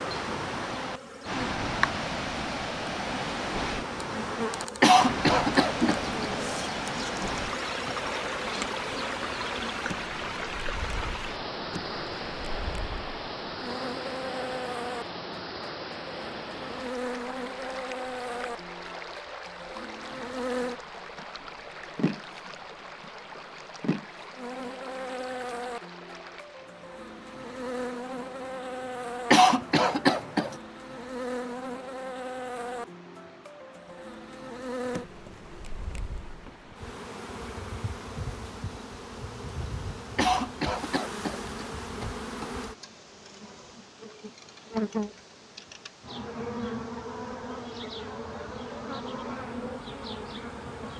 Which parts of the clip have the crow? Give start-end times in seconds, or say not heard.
not heard.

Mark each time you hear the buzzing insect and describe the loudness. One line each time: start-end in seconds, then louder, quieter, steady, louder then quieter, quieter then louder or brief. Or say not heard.
0.0-50.9 steady.